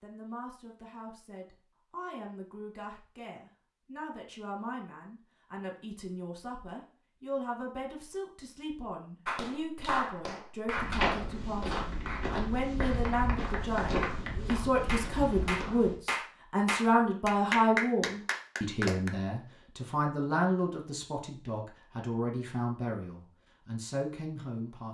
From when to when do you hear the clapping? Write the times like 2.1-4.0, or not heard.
9.2-19.1.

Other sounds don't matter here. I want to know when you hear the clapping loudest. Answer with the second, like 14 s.
18 s.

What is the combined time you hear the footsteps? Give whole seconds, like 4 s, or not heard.
5 s.